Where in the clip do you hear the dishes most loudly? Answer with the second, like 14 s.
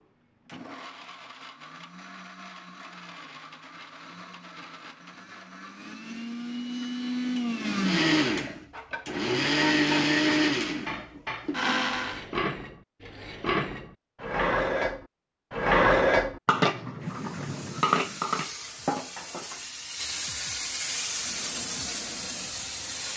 16 s.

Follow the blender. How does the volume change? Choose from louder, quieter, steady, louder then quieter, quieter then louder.
louder.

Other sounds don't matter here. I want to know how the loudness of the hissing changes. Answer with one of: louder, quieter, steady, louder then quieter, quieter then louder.
louder.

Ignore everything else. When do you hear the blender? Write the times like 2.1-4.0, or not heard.
0.0-12.2.